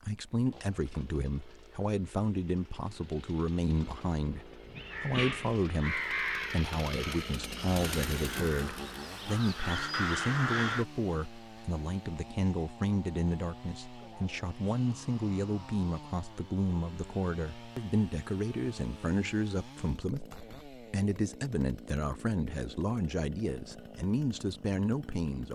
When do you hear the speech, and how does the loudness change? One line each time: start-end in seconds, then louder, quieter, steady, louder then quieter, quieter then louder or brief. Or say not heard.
0.0-25.5 steady.